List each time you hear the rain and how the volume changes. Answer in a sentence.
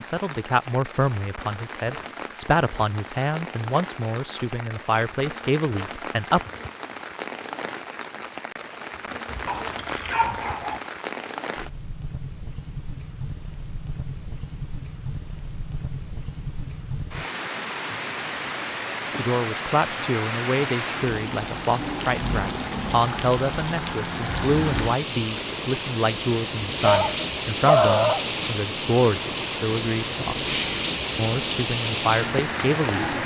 The rain can be heard from 0.0 to 33.2 s, getting louder.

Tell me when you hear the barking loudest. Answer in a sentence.
The loudest moment of the barking is at 28 seconds.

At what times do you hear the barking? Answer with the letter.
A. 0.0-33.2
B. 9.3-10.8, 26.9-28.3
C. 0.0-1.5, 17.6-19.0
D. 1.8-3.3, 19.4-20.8
B.